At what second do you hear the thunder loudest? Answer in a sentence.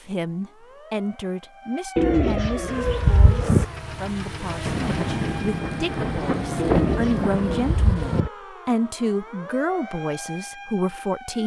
The loudest moment of the thunder is at 7 seconds.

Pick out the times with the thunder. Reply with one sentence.
The thunder can be heard from 4.7 to 8.2 s.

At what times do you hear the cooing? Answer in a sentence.
The cooing can be heard from 1.9 to 3.6 s and from 6.5 to 8.3 s.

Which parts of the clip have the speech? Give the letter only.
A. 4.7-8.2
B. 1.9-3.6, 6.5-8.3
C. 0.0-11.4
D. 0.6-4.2
C.